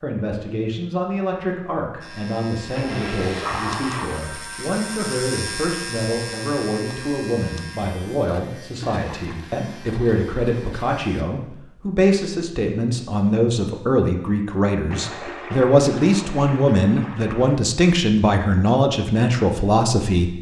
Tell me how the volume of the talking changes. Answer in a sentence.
The loudness of the talking goes up.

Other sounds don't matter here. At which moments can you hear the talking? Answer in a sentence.
The talking can be heard from 0.0 to 20.3 s.